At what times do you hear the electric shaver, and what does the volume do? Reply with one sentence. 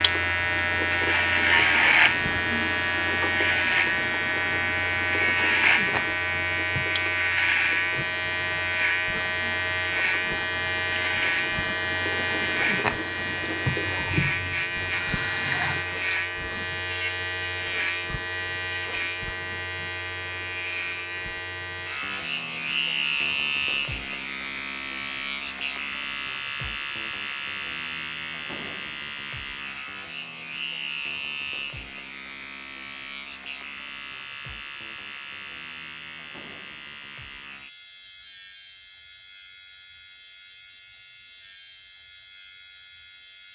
You can hear the electric shaver from 0.0 to 43.5 s, getting quieter.